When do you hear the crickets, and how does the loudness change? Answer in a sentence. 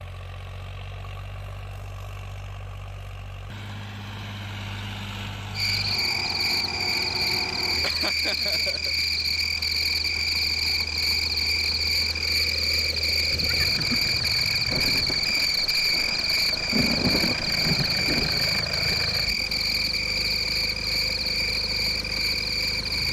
You can hear the crickets from 5.5 to 23.0 s, at a steady volume.